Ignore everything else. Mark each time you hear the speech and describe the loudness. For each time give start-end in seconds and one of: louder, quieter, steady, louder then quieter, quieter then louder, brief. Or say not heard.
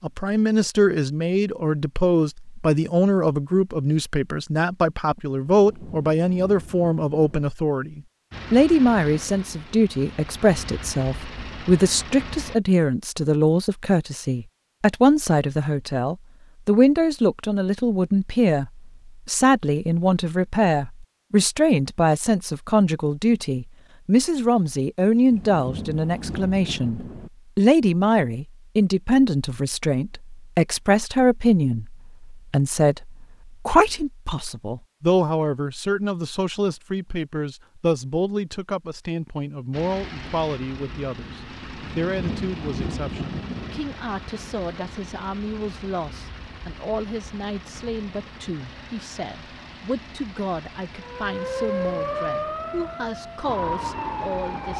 0.0-54.7 quieter.